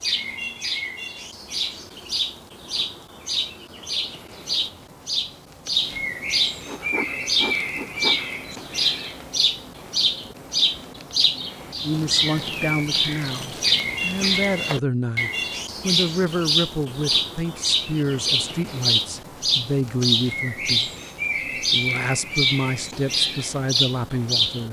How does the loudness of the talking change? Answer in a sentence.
The loudness of the talking stays about the same.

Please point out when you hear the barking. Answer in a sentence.
The barking can't be heard in this clip.